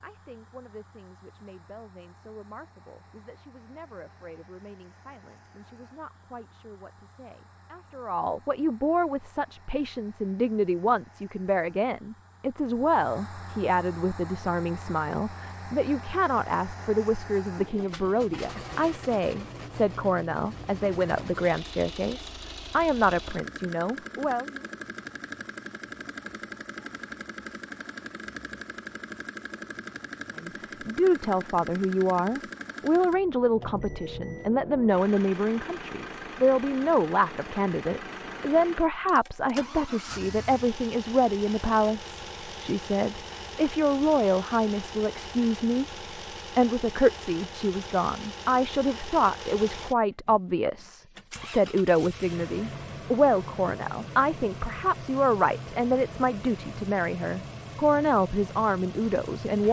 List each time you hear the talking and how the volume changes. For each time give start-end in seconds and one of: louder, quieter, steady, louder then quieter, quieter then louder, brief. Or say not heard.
0.0-24.6 louder
30.4-45.9 steady
46.5-59.6 steady.